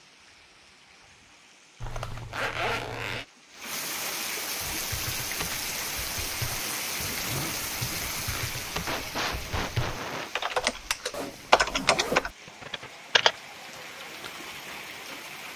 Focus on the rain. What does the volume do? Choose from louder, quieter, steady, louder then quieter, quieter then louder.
louder then quieter.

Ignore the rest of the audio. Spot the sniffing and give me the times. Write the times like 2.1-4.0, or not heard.
8.1-10.3.